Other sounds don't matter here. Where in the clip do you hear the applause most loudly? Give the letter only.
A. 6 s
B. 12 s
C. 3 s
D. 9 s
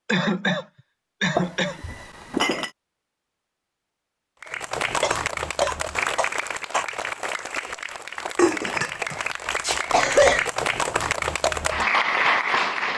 B.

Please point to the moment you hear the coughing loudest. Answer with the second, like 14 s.
10 s.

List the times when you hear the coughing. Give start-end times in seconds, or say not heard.
0.1-1.8, 5.0-6.8, 9.9-10.5.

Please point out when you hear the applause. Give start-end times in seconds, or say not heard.
4.4-12.9.